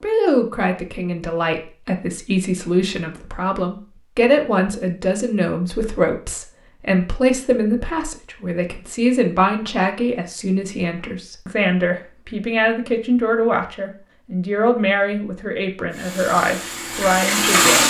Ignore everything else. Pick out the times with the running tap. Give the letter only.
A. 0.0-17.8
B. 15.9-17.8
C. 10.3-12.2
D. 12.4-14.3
B.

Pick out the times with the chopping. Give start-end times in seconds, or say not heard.
not heard.